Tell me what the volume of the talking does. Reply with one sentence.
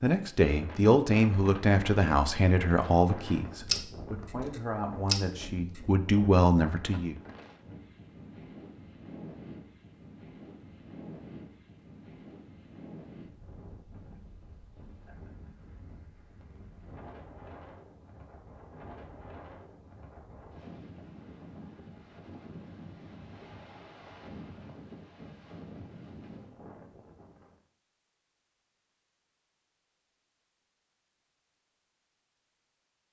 The loudness of the talking goes down, then up.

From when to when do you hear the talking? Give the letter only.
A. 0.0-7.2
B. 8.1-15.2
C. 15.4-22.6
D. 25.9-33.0
A.